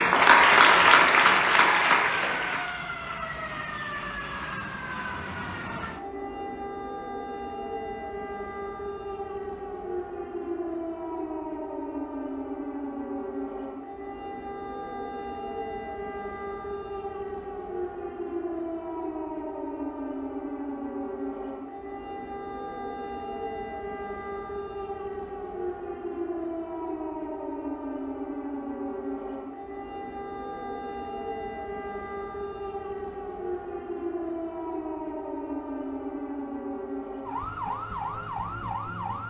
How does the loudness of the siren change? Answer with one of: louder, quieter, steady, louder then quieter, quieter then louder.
steady.